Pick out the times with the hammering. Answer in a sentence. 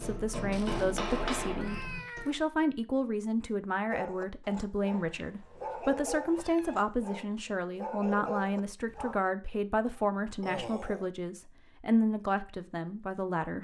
The hammering can be heard from 0.0 to 2.2 s.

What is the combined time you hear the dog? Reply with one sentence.
The dog can be heard for 5 seconds in total.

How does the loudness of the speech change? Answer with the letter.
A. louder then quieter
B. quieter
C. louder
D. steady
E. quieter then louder
D.